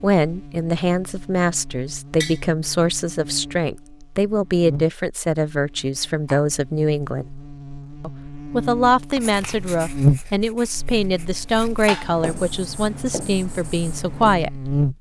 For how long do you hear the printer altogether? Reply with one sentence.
You can't hear the printer here.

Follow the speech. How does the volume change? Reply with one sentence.
The loudness of the speech stays about the same.